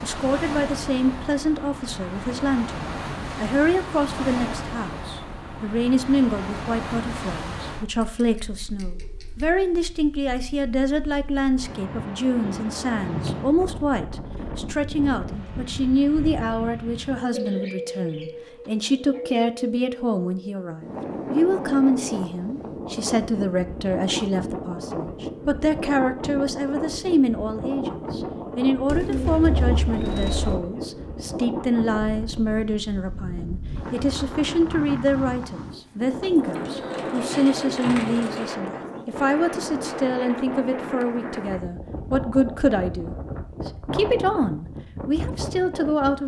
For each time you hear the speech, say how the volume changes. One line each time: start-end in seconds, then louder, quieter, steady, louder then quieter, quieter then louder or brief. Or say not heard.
0.0-46.2 steady.